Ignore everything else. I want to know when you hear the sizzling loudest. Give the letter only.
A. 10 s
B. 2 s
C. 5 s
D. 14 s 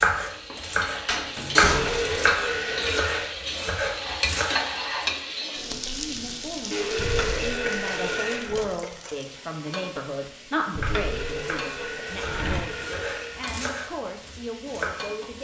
C.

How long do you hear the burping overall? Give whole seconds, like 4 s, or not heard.
6 s.